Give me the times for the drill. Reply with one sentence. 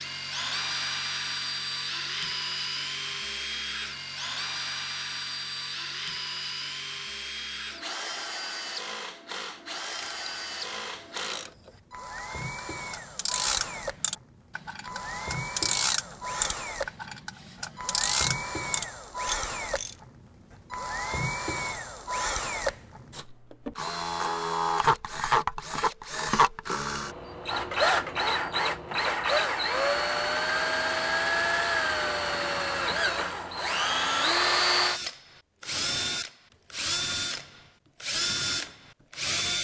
The drill can be heard from 0.0 to 39.5 s.